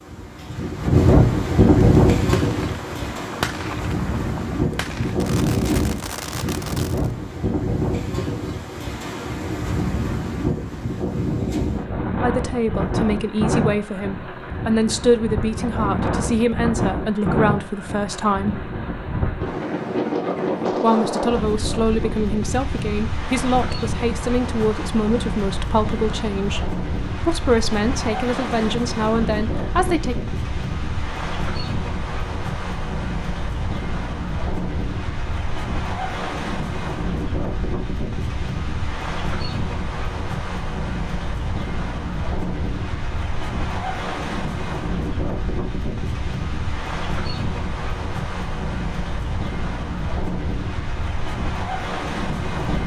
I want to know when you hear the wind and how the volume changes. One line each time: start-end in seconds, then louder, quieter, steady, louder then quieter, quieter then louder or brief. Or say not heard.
0.0-52.8 quieter.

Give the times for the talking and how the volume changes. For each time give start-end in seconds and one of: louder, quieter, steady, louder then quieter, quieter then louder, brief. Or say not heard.
12.2-18.6 steady
20.8-30.1 steady.